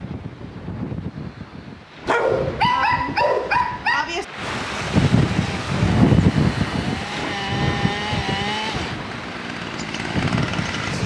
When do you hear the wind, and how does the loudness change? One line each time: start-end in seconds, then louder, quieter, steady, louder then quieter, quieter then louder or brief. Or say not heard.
0.0-11.0 louder then quieter.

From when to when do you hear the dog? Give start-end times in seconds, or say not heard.
2.0-4.2.